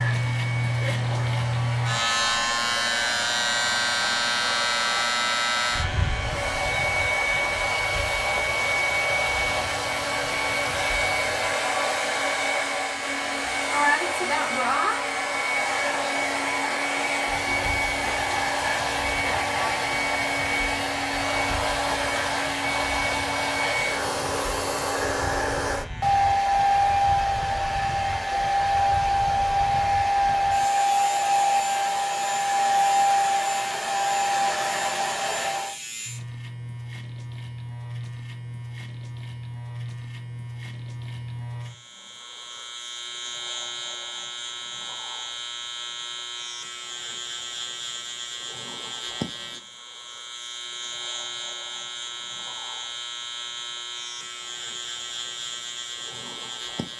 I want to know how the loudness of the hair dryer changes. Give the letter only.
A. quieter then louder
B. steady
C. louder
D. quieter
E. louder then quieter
C.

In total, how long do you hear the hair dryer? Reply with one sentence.
You can hear the hair dryer for 36 seconds altogether.